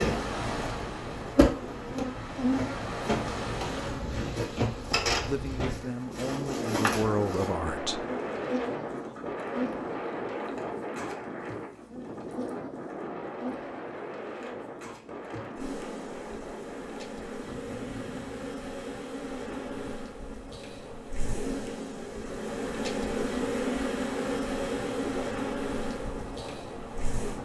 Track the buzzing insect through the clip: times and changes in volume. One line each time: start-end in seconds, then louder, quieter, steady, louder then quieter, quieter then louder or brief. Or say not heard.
0.0-27.4 quieter then louder.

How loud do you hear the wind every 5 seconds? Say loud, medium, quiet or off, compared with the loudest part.
loud, loud, loud, medium, medium, medium.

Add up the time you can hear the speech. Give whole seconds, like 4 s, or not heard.
3 s.